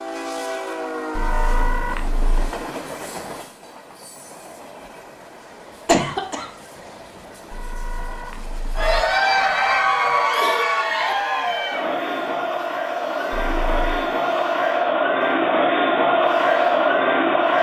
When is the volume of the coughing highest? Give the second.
6 s.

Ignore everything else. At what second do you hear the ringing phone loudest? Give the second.
2 s.